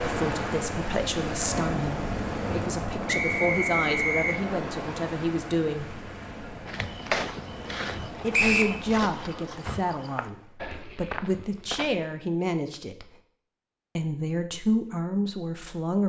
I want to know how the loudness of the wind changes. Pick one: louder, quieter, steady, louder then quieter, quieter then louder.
quieter.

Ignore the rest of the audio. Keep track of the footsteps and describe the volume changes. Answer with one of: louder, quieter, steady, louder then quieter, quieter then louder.
quieter.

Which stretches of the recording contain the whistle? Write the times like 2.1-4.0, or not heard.
3.0-4.3, 8.3-8.8.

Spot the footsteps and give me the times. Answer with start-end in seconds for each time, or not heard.
6.7-12.1.